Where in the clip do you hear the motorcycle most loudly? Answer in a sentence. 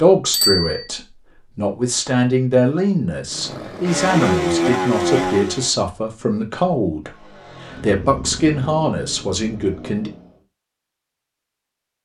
The loudest moment of the motorcycle is at 5 seconds.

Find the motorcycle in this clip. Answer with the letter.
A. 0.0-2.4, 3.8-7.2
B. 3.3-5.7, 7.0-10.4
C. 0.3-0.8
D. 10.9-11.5
B.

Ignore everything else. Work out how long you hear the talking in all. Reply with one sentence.
You can hear the talking for 10 seconds altogether.